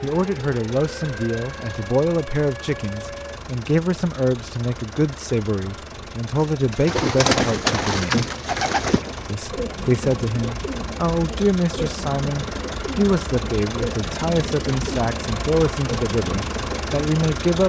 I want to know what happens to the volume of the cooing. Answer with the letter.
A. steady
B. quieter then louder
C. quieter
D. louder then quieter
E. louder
C.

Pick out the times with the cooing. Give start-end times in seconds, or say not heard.
6.3-17.0.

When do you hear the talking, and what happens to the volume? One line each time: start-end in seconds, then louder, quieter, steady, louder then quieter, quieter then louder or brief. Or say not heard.
0.0-8.3 steady
9.2-17.6 steady.